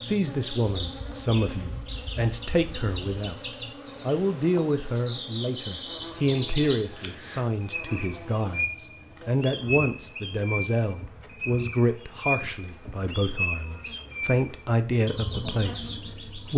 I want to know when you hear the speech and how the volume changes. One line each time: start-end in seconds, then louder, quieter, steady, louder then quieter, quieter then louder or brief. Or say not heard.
0.0-16.5 steady.